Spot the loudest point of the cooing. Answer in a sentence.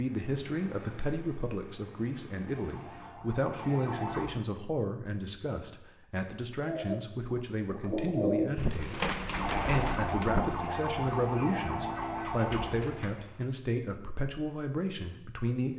The volume of the cooing peaks at 8 seconds.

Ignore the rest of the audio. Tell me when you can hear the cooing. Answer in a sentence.
You can hear the cooing from 6.7 to 13.5 s.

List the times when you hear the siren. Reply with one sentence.
You can hear the siren from 2.5 to 4.2 s and from 9.2 to 12.8 s.